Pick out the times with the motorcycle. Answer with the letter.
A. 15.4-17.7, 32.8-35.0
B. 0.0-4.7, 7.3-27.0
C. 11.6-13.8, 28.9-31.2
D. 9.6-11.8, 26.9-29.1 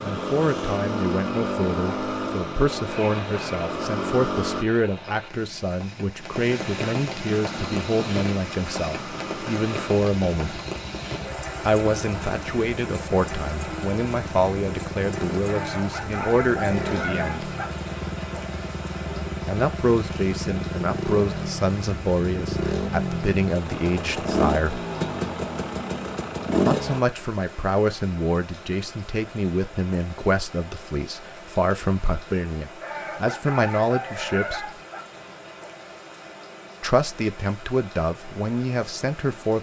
B.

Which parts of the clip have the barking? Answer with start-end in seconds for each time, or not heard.
15.4-17.7, 32.8-35.0.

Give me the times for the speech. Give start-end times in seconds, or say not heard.
0.0-10.6, 11.7-17.5, 19.4-24.9, 26.6-34.7, 36.8-39.5.